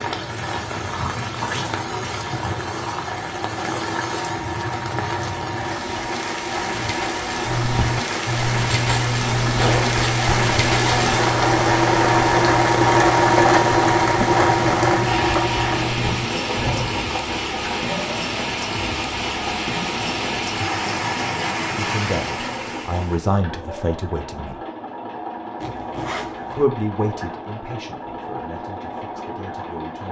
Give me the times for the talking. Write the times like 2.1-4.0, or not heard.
21.8-24.6, 26.6-30.0.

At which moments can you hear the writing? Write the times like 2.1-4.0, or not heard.
7.4-16.9.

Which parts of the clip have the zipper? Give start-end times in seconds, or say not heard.
9.4-9.8, 25.6-26.6.